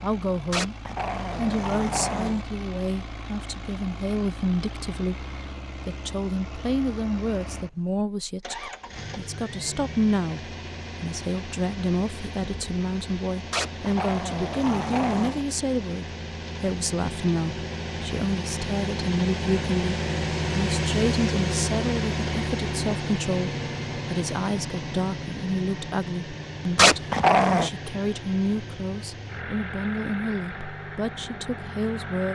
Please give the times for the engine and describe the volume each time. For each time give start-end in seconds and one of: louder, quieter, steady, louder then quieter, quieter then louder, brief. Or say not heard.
0.0-32.3 louder then quieter.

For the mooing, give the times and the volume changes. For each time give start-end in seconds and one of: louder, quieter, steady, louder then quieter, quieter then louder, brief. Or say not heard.
not heard.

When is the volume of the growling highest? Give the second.
27 s.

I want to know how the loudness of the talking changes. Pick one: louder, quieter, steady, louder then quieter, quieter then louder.
steady.